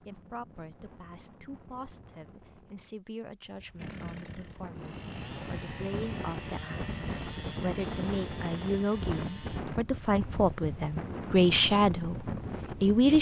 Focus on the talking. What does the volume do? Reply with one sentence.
The loudness of the talking goes up.